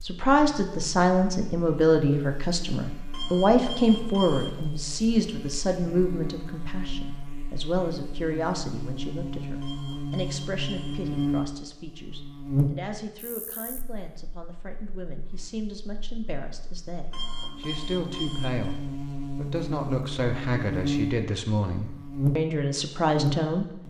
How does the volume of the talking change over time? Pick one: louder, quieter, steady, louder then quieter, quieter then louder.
quieter then louder.